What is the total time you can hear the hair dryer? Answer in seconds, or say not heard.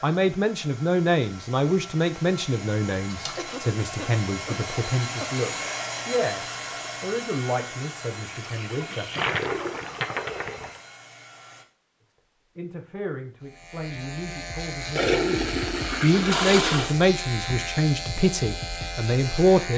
12 s.